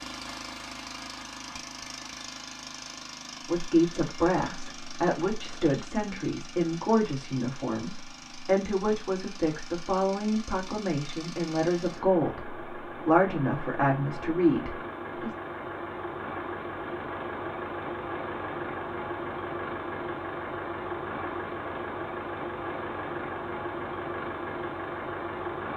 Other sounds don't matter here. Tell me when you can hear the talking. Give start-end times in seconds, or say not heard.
3.5-15.3.